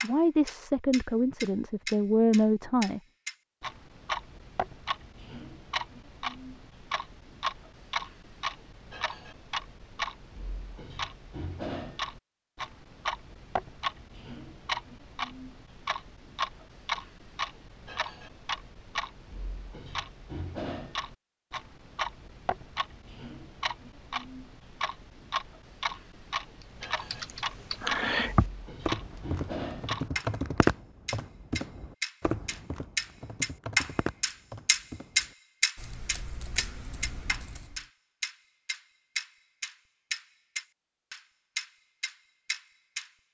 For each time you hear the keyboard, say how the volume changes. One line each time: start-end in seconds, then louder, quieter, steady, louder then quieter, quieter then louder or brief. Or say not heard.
26.8-37.8 quieter.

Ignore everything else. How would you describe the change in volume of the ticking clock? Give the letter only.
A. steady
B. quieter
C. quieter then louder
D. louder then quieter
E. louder
E.